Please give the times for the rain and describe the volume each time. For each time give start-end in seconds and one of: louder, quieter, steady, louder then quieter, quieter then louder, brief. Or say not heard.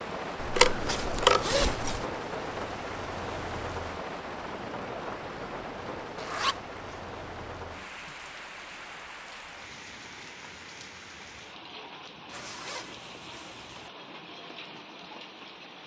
0.0-15.8 quieter.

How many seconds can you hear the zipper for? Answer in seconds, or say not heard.
4 s.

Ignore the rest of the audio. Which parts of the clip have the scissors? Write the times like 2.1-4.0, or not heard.
0.6-1.6.